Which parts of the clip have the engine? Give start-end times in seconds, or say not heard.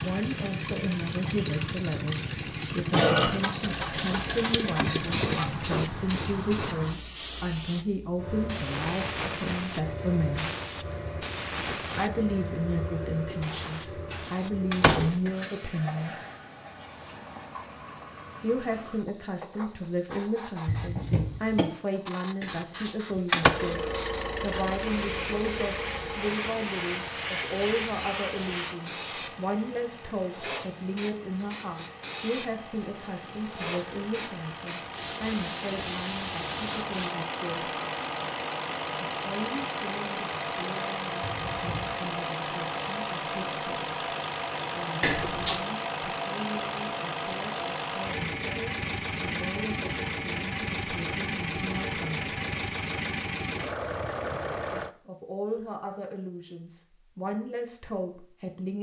0.0-5.7, 23.4-54.9.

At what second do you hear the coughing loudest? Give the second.
3 s.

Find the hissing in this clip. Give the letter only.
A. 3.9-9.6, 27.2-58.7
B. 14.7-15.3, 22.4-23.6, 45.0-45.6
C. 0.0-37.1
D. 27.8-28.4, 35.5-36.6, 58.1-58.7
C.